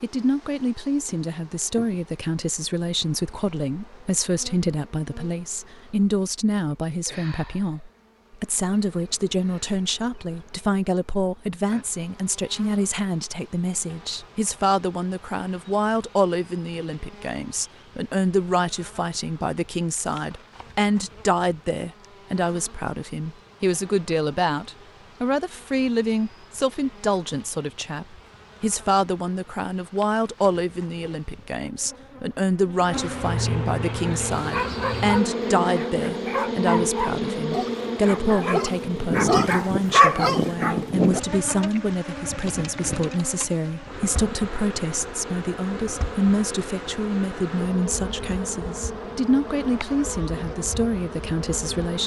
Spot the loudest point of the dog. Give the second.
40 s.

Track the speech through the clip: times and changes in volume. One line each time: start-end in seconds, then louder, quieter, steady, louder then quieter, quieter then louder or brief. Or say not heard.
0.0-52.0 steady.